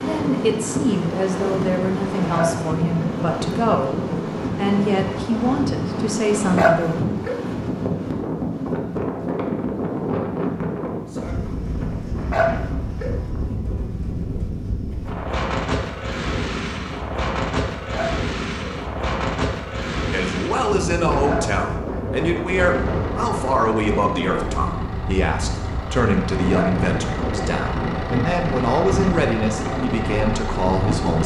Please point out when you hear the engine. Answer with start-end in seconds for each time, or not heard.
22.7-31.2.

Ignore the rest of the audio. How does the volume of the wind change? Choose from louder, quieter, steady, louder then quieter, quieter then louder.
steady.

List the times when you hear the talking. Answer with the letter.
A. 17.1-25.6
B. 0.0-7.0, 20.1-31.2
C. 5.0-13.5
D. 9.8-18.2
B.